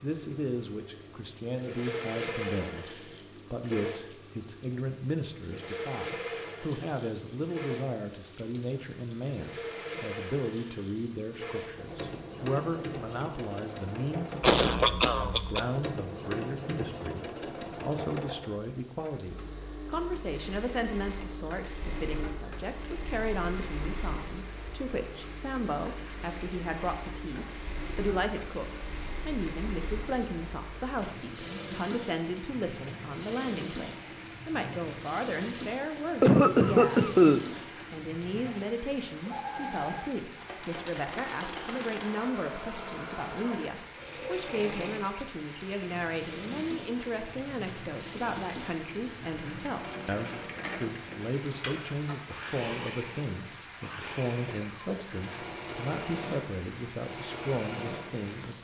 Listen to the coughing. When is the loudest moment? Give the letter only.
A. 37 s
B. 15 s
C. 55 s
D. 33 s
A.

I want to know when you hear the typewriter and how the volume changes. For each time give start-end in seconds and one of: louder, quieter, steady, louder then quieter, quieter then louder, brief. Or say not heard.
not heard.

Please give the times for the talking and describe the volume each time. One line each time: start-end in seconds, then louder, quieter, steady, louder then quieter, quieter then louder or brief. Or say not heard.
0.0-37.1 steady
37.9-58.5 steady.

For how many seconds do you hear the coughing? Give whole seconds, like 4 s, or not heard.
3 s.